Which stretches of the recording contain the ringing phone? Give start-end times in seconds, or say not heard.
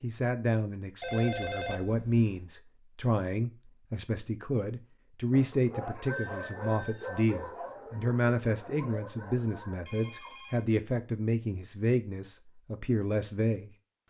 1.0-2.2, 6.0-7.5, 9.8-10.7.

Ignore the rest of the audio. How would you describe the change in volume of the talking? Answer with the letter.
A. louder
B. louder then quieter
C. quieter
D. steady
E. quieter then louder
D.